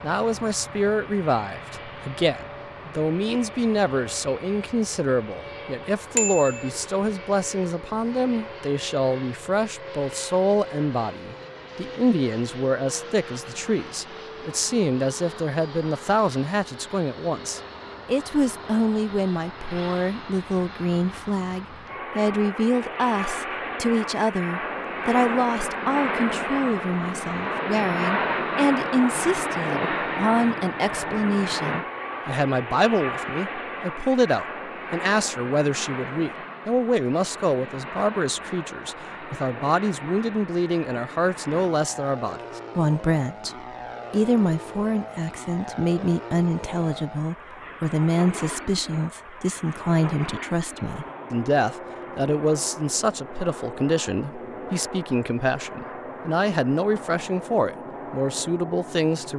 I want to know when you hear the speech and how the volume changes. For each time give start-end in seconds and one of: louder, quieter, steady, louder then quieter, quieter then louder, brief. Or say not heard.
0.0-59.3 steady.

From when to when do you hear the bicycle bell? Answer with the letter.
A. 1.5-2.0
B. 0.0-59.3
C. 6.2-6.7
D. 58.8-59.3
C.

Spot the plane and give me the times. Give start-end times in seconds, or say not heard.
0.0-59.3.